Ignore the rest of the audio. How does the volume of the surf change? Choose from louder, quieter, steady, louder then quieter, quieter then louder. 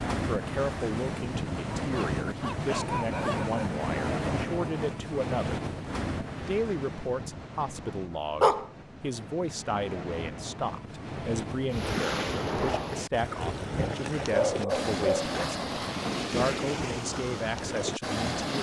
quieter then louder.